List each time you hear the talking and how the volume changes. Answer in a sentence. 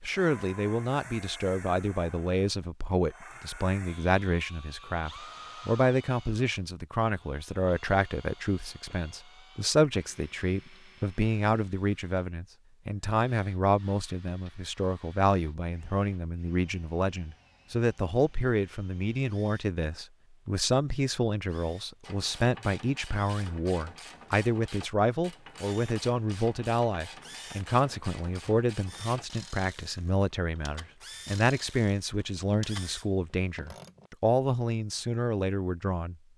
The talking can be heard from 0.0 to 36.1 s, at a steady volume.